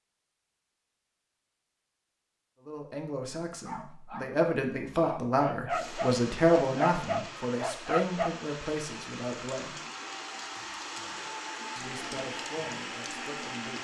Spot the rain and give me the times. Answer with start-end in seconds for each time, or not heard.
5.7-13.7.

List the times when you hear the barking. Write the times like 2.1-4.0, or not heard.
3.6-8.3.